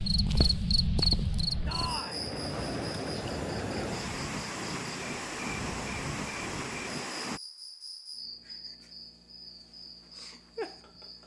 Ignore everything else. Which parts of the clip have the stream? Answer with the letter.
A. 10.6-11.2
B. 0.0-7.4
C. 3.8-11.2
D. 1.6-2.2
B.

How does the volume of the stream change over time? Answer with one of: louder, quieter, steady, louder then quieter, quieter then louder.
louder.